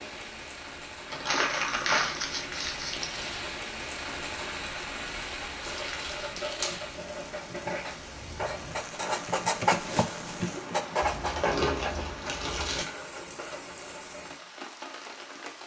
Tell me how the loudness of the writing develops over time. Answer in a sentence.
The volume of the writing goes up, then down.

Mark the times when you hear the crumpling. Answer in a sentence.
The crumpling can be heard from 1.1 to 3.4 s, from 5.6 to 6.8 s and from 11.0 to 12.8 s.